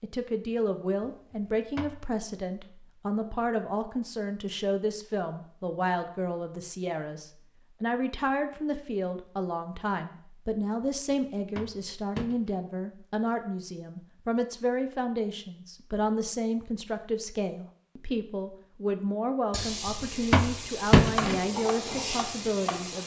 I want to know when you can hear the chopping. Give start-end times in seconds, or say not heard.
21.1-23.0.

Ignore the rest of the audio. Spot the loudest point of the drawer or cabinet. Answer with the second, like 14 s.
21 s.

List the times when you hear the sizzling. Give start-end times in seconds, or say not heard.
19.5-23.0.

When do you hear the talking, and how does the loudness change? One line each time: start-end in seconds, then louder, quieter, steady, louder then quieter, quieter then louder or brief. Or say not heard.
0.0-23.0 steady.